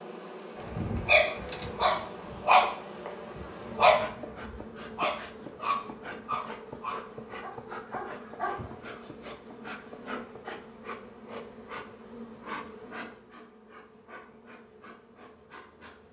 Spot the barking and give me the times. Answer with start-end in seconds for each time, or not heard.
0.6-9.1.